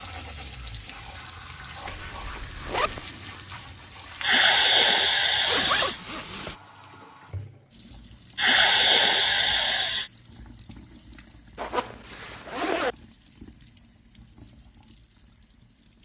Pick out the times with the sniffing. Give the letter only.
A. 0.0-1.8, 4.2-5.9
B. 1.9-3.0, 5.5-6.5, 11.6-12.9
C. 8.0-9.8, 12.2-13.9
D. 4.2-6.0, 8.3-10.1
D.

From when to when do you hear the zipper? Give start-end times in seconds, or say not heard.
1.9-3.0, 5.5-6.5, 11.6-12.9.